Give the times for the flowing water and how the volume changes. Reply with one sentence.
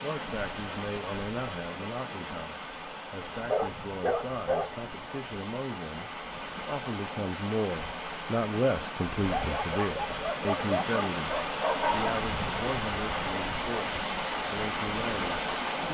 The flowing water can be heard from 0.0 to 15.8 s, getting louder.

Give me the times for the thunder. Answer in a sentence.
You can't hear the thunder here.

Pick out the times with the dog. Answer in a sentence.
You can hear the dog from 3.3 to 4.7 s and from 9.2 to 12.2 s.